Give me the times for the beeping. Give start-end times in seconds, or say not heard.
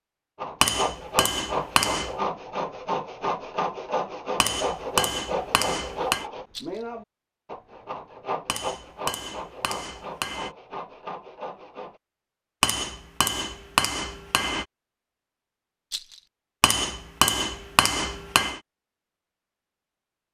not heard.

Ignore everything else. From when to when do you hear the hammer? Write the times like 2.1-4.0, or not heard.
0.6-2.1, 4.4-6.2, 8.4-10.5, 12.6-14.7, 16.6-18.6.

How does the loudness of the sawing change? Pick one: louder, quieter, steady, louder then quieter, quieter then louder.
quieter.